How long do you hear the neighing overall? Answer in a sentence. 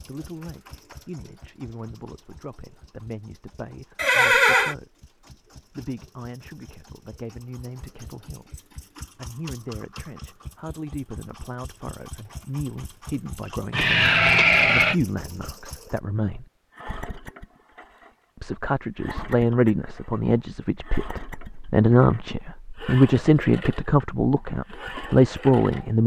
The neighing can be heard for 2 seconds in total.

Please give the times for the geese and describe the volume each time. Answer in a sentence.
You can't hear the geese here.